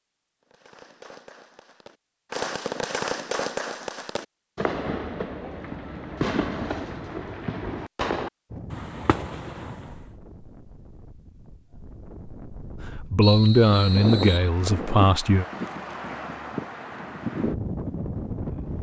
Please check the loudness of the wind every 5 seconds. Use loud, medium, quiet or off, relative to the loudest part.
off, medium, loud, loud.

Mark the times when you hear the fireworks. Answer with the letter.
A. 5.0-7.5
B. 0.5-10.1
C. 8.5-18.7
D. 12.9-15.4
B.